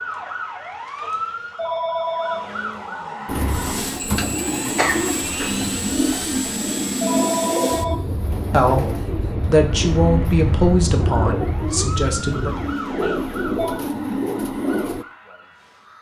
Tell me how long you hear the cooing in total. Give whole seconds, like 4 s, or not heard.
12 s.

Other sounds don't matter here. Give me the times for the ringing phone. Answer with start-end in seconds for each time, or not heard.
1.0-2.5, 6.4-8.0, 13.0-13.8.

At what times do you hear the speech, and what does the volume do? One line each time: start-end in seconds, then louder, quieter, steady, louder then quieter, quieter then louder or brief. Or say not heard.
8.5-12.5 louder then quieter.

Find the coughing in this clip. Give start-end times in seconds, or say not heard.
4.8-5.5.